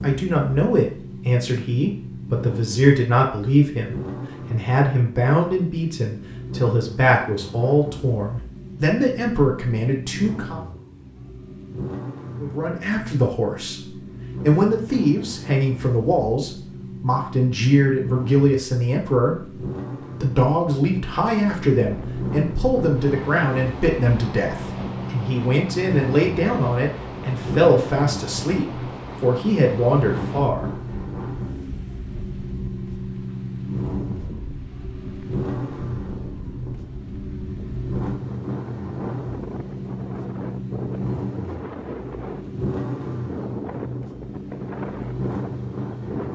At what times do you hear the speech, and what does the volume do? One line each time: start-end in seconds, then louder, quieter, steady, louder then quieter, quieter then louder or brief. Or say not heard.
0.0-10.6 steady
12.4-30.6 steady.